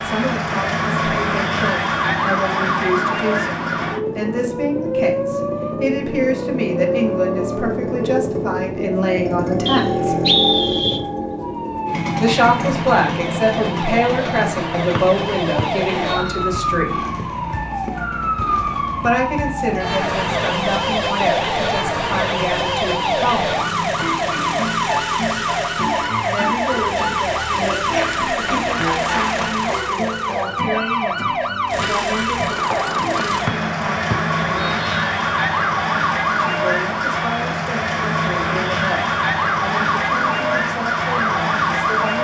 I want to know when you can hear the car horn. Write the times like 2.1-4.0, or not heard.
not heard.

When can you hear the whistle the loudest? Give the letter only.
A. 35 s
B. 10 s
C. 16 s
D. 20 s
B.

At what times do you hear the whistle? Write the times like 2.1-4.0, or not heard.
9.7-11.0, 14.9-16.4, 34.1-34.9.